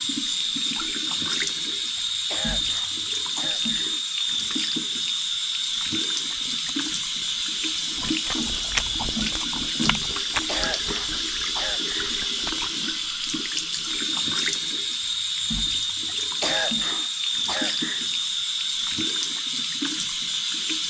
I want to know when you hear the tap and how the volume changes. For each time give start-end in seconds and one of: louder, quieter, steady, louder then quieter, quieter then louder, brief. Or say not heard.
0.0-20.8 steady.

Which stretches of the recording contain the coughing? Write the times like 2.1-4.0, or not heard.
1.9-4.0, 10.2-12.2, 16.1-18.1.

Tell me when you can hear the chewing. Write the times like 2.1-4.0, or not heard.
6.3-12.7.